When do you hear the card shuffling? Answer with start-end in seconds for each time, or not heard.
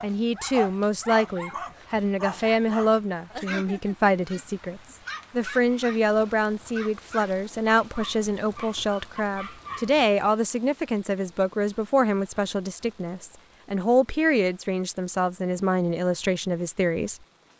not heard.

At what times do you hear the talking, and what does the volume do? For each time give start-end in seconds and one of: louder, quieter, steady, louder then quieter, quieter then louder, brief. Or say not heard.
0.0-17.5 steady.